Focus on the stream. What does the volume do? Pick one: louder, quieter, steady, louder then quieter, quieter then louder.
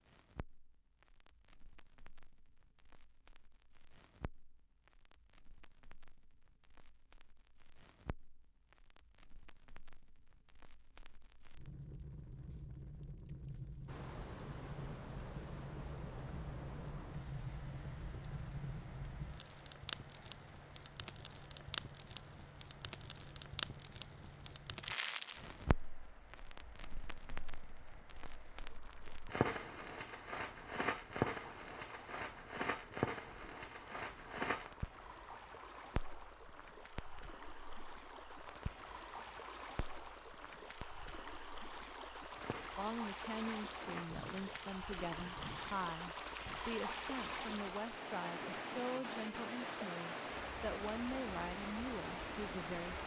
quieter then louder.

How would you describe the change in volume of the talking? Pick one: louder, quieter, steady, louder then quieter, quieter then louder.
steady.